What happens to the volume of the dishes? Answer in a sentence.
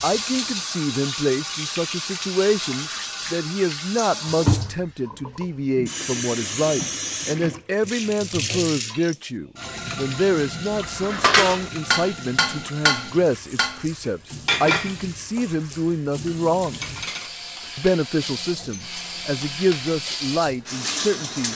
The volume of the dishes goes down.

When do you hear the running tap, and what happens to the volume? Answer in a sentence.
The running tap can be heard from 0.0 to 21.5 s, getting quieter then louder.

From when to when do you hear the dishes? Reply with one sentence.
The dishes can be heard from 10.8 to 13.8 s and from 14.4 to 20.1 s.